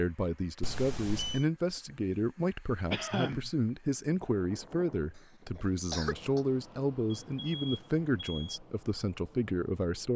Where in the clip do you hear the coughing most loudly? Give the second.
3 s.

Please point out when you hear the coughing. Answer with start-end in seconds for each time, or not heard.
2.9-3.5, 5.5-6.4.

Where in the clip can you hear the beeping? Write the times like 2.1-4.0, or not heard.
0.6-1.4, 7.1-8.6.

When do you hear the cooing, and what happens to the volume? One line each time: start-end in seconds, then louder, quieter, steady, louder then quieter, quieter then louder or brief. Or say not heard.
not heard.